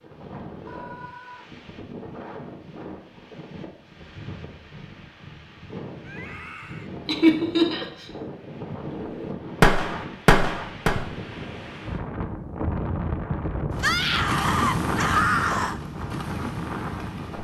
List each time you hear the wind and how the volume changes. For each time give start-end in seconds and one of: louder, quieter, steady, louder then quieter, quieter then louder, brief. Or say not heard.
0.0-17.3 louder.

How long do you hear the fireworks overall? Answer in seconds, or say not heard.
2 s.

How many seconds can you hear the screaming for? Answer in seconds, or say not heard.
4 s.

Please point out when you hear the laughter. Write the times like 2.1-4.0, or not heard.
7.0-8.1.